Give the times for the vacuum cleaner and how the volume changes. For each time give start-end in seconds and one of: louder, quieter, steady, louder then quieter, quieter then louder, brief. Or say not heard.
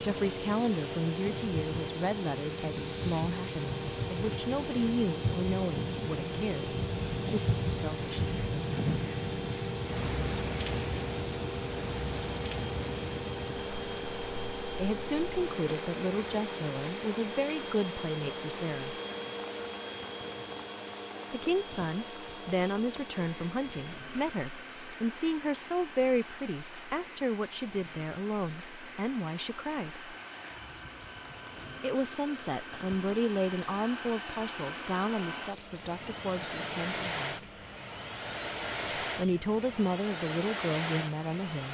0.0-41.6 quieter then louder.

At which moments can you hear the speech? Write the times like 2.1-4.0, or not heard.
0.0-8.3, 14.8-19.0, 21.3-30.1, 31.8-37.5, 39.0-41.6.